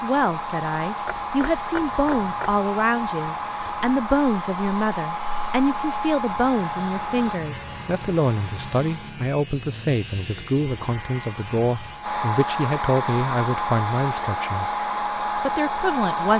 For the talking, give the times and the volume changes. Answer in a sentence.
The talking can be heard from 0.0 to 16.3 s, at a steady volume.